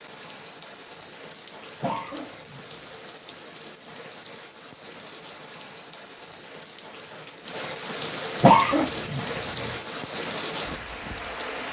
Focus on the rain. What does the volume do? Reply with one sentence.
The loudness of the rain goes up.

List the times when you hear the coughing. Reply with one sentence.
The coughing can be heard from 1.8 to 2.6 s and from 8.4 to 9.8 s.